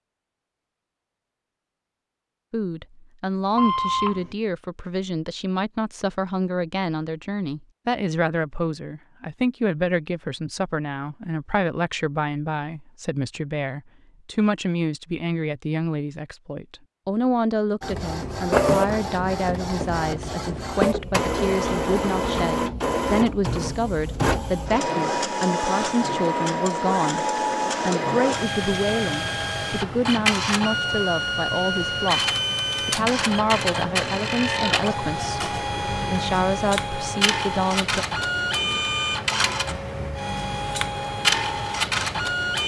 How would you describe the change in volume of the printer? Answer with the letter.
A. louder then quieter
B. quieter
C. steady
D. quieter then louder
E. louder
C.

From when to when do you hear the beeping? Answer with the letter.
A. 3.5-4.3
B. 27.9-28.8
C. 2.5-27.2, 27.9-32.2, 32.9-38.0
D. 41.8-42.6
A.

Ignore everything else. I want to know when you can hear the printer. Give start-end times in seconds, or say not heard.
17.8-42.6.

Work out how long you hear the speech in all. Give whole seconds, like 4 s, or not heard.
34 s.